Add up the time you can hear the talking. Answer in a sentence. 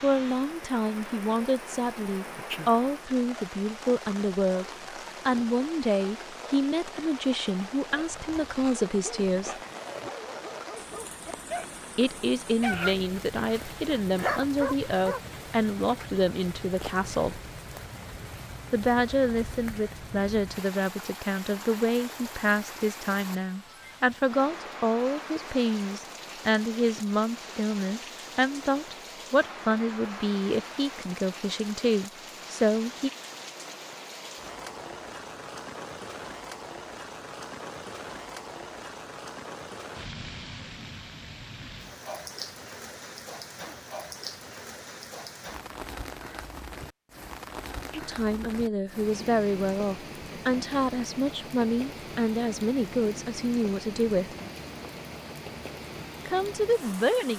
The talking can be heard for 37 seconds in total.